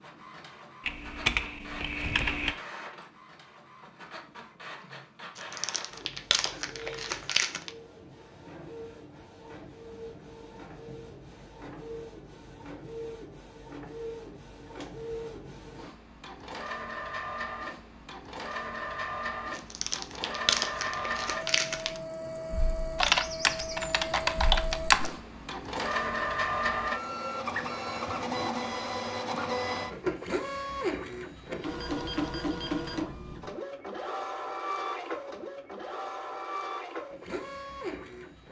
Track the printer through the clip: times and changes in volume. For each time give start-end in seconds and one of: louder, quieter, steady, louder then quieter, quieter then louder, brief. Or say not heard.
0.0-38.4 louder.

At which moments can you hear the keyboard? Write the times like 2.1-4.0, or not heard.
0.8-2.5, 23.0-25.1.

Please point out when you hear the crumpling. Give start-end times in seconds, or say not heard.
5.3-7.7, 19.6-22.0.